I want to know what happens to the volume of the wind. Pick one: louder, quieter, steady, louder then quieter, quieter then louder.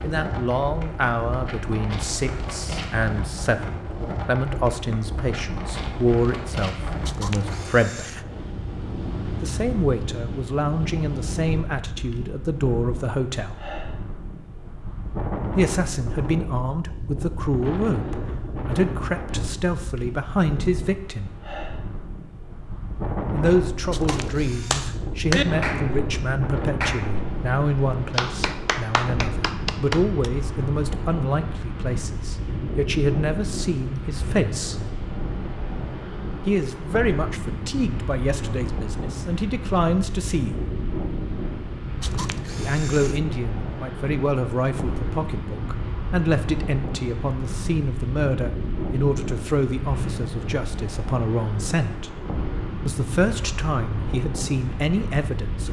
steady.